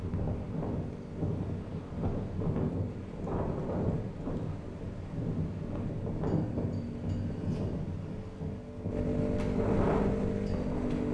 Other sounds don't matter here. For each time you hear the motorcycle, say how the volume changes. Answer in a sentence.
The motorcycle can be heard from 0.0 to 11.1 s, getting louder.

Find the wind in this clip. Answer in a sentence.
You can hear the wind from 0.0 to 11.1 s.